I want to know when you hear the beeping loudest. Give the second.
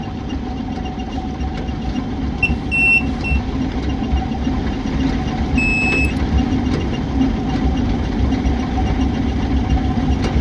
3 s.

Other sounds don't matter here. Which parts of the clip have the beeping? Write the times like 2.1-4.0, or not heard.
2.4-3.4, 5.5-6.2.